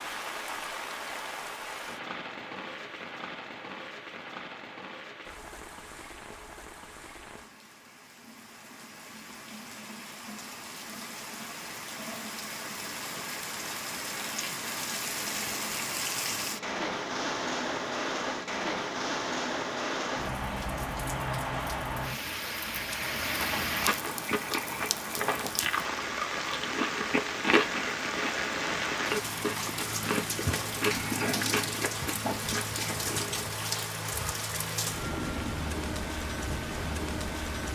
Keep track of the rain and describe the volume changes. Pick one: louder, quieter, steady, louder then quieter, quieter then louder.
louder.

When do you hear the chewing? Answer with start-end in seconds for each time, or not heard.
23.4-33.6.